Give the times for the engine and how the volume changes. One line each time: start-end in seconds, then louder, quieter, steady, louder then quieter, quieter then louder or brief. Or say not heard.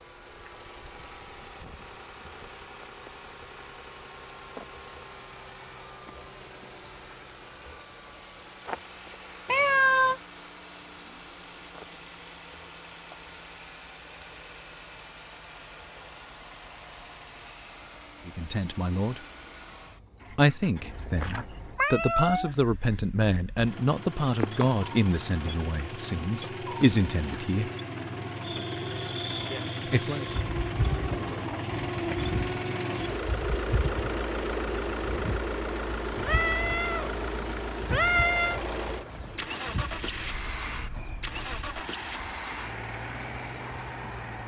0.0-44.4 louder.